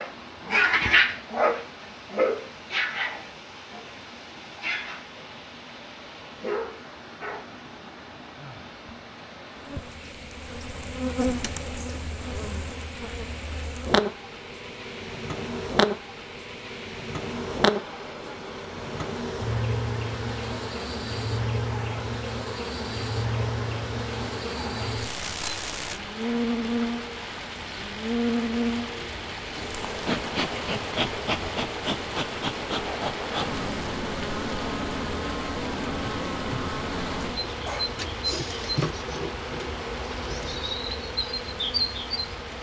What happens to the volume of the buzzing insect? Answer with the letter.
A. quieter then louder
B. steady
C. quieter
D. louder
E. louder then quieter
B.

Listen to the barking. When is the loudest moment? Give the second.
1 s.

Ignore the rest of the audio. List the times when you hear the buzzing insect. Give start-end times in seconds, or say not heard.
9.6-42.5.